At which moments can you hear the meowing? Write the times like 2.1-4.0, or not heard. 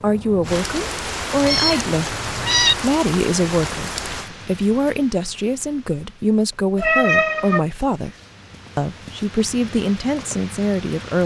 1.4-2.8, 6.8-7.6.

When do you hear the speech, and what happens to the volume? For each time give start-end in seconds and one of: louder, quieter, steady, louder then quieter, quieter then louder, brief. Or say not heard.
0.0-8.2 steady
8.8-11.2 brief.